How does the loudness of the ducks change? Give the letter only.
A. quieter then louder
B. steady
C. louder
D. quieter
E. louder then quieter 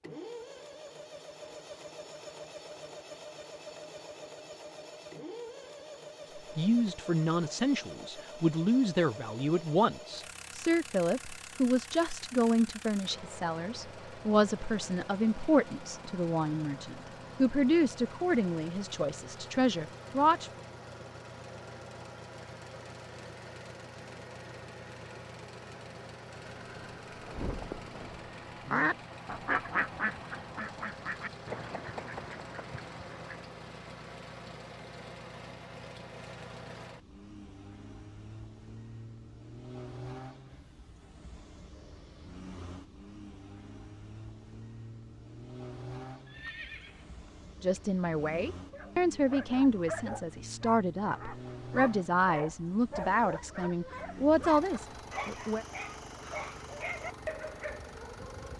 E.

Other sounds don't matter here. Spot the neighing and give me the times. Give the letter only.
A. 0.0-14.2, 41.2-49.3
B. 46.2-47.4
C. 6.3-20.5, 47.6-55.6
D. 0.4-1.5
B.